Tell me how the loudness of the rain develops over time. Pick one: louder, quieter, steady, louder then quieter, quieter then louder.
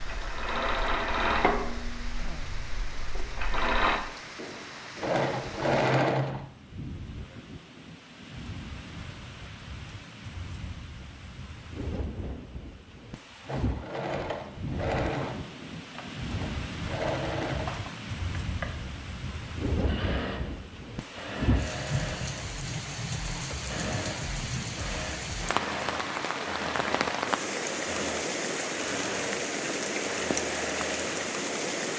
louder.